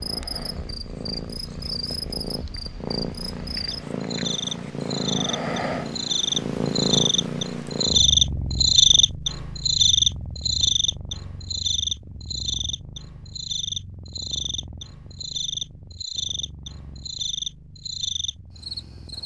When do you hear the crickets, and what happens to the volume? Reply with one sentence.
The crickets can be heard from 0.0 to 19.2 s, getting louder then quieter.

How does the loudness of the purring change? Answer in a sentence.
The loudness of the purring goes up, then down.